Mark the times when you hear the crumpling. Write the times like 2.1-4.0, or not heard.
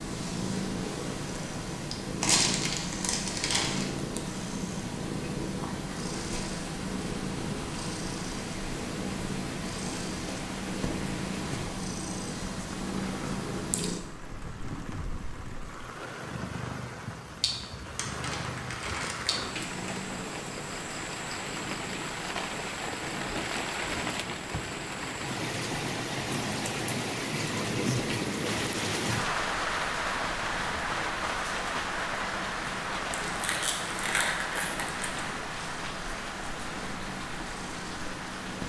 2.2-3.9, 17.9-19.9, 33.3-35.2.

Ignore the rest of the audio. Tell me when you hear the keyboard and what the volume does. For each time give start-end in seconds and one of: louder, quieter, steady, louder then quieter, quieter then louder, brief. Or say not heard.
not heard.